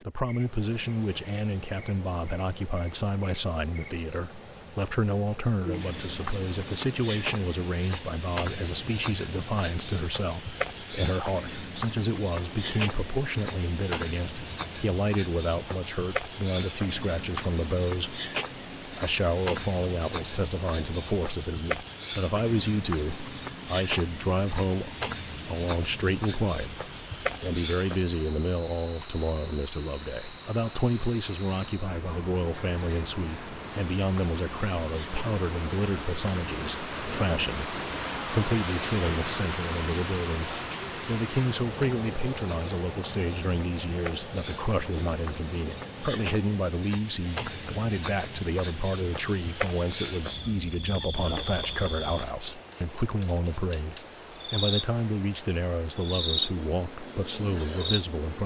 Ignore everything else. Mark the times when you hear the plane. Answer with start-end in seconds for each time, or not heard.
not heard.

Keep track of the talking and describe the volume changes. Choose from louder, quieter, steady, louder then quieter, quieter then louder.
steady.